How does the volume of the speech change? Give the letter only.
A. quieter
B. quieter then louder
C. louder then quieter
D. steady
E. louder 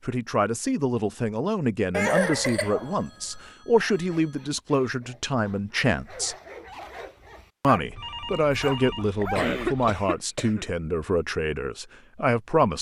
D.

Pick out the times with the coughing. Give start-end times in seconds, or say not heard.
1.9-2.8, 8.3-10.7.